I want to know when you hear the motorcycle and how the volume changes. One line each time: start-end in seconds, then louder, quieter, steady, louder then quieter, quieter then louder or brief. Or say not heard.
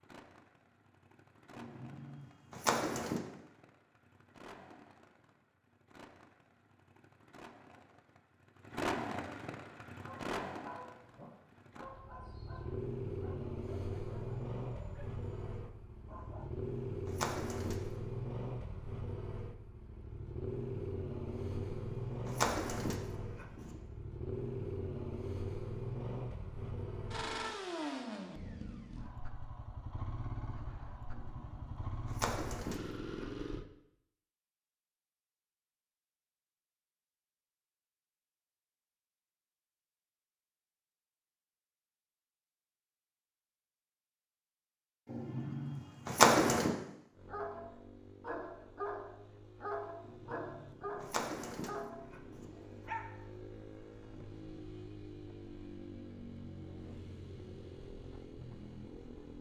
0.0-33.6 louder
47.1-59.3 louder.